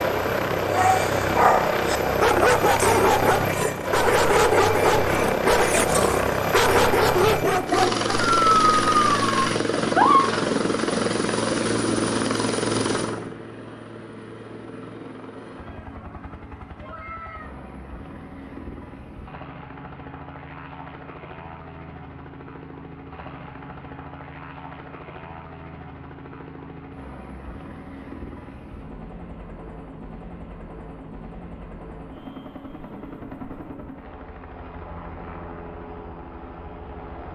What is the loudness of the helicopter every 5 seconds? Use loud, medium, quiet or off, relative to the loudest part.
loud, loud, loud, quiet, quiet, quiet, quiet, quiet.